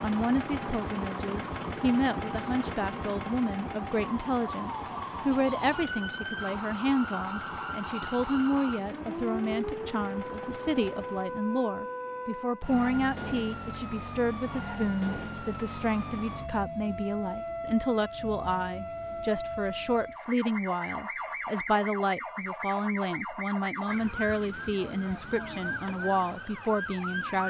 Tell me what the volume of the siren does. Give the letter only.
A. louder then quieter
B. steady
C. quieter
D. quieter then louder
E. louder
B.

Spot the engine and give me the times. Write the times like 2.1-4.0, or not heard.
0.0-11.4.